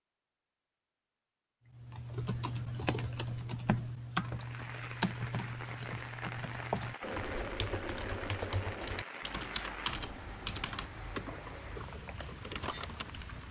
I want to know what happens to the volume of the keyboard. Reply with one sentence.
The loudness of the keyboard goes down.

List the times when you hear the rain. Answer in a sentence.
You can hear the rain from 4.2 to 13.4 s.